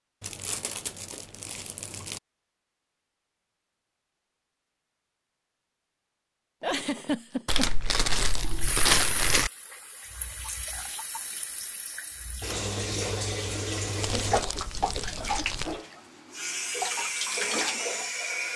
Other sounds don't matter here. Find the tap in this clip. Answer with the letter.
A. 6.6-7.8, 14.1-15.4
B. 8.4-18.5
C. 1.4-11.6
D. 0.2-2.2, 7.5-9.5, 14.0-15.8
B.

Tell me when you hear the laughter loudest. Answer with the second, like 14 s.
7 s.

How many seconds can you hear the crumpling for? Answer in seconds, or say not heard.
6 s.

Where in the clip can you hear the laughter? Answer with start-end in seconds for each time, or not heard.
6.6-7.8, 14.1-15.4.